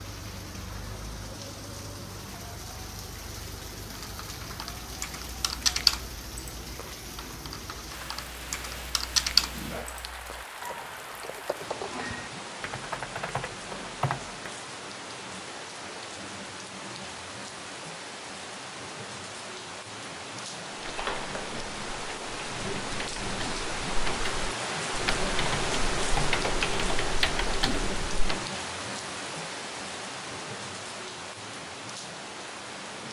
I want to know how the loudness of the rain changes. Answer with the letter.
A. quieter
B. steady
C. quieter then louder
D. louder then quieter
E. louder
E.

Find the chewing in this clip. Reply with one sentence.
The chewing can't be heard in this clip.